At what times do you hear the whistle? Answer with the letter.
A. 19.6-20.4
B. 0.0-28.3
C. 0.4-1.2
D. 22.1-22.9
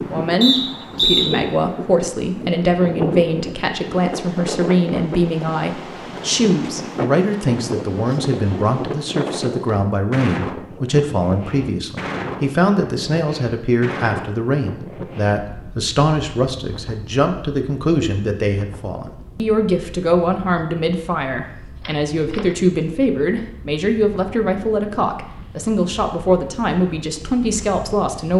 C.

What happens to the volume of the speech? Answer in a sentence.
The volume of the speech stays about the same.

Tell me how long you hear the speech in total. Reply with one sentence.
The speech can be heard for 28 seconds in total.